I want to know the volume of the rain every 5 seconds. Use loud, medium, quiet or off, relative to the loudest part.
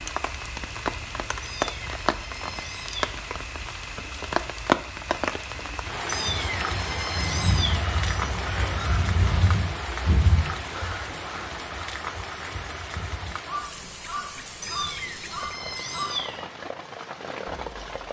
loud, loud, medium, medium.